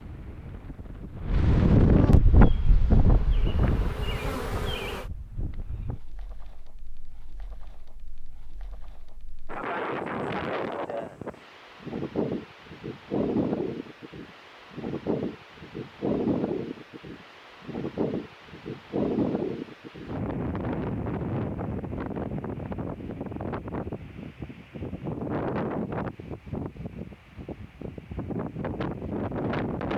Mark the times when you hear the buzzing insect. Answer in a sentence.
The buzzing insect can be heard from 2.2 to 5.1 s.